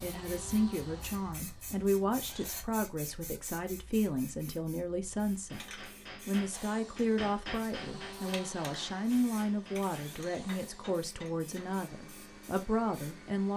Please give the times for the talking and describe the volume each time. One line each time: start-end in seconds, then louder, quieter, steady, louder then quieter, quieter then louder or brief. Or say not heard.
0.0-13.5 steady.